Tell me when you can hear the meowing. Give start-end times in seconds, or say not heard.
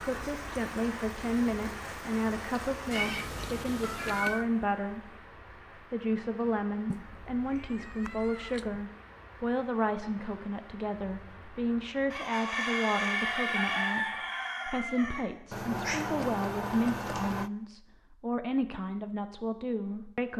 2.9-4.5, 6.9-8.9, 15.5-17.5.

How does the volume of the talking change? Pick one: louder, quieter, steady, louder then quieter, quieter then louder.
steady.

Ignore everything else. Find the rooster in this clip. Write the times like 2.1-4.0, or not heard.
12.1-15.2.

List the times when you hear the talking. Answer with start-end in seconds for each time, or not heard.
0.0-5.2, 5.9-20.3.